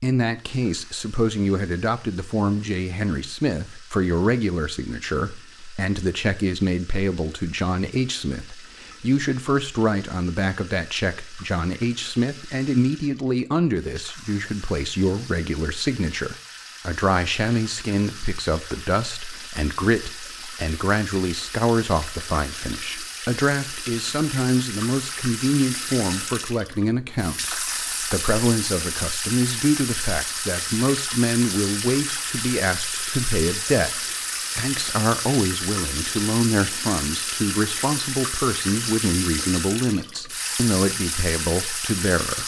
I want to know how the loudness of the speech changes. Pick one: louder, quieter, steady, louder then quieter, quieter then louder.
steady.